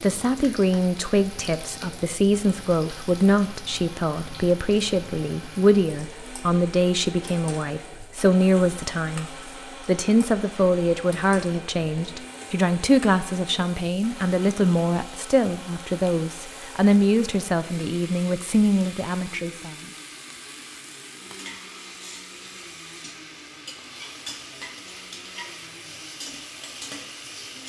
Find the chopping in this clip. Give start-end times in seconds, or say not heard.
not heard.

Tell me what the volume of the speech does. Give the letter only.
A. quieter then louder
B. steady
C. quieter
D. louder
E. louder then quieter
B.